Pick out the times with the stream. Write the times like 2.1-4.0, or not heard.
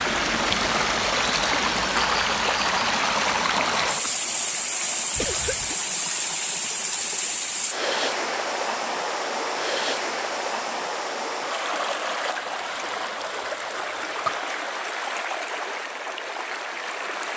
0.0-17.3.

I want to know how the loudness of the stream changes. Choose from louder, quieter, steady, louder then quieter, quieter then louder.
quieter.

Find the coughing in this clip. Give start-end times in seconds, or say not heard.
5.2-5.8, 12.8-14.4.